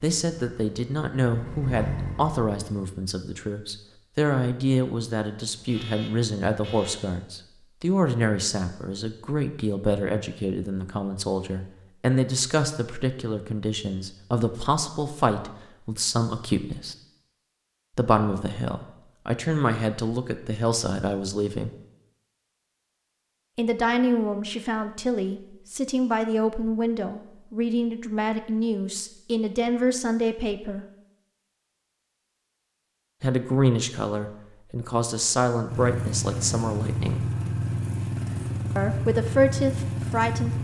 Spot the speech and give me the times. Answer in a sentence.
The speech can be heard from 0.0 to 16.9 s, from 17.9 to 21.7 s, from 23.6 to 30.9 s, from 33.2 to 37.2 s and from 38.8 to 40.5 s.